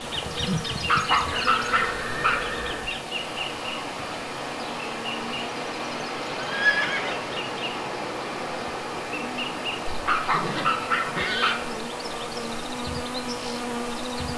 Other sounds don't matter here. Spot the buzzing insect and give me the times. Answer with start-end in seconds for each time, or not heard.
0.0-14.3.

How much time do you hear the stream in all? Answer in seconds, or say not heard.
14 s.